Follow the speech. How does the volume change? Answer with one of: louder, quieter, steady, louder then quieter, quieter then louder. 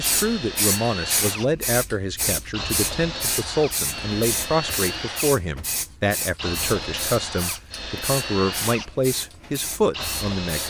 steady.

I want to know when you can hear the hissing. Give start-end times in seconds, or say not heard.
0.0-10.6.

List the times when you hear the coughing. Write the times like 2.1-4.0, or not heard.
not heard.